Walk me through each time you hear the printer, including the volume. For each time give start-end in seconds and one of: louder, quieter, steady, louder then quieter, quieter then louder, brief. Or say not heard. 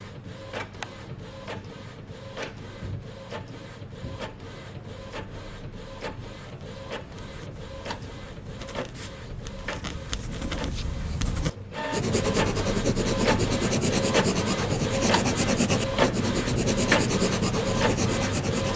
0.0-18.7 louder.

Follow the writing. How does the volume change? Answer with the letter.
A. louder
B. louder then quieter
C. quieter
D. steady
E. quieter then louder
A.